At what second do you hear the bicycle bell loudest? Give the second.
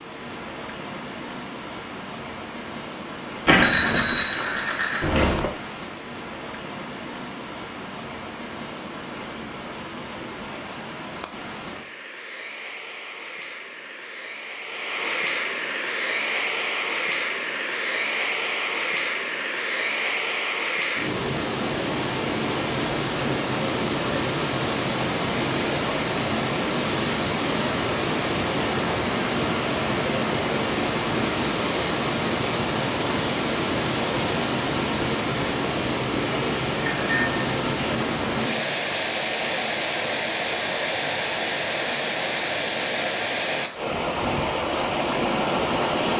4 s.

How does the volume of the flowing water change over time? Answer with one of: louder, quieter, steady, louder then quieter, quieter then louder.
louder.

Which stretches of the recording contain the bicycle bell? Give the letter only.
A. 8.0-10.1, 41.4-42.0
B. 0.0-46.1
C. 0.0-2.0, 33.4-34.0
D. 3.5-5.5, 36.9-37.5
D.